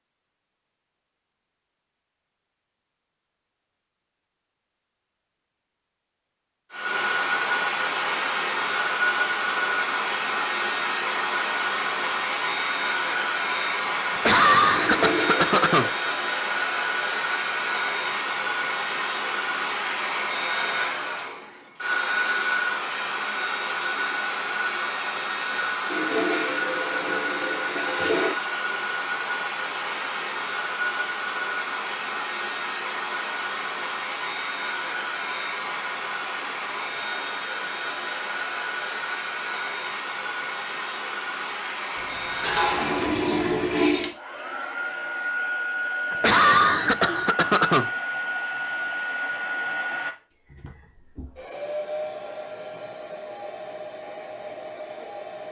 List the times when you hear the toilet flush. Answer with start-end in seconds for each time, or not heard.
14.8-15.9, 25.9-28.4, 42.0-44.1.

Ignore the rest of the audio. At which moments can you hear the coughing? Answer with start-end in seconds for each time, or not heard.
14.1-15.9, 46.1-47.9.